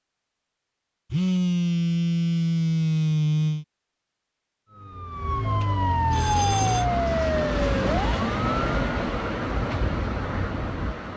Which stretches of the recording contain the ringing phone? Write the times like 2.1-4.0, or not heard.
1.1-3.6, 6.1-6.8.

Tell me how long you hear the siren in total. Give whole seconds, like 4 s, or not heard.
4 s.